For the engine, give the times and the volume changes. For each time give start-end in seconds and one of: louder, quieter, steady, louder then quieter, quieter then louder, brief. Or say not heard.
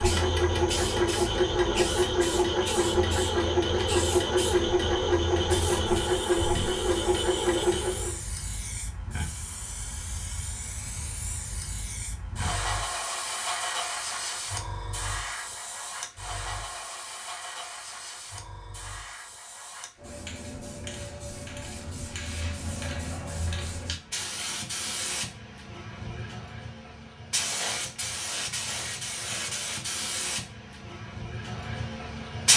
0.0-8.2 steady.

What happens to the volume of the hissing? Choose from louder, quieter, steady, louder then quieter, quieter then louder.
steady.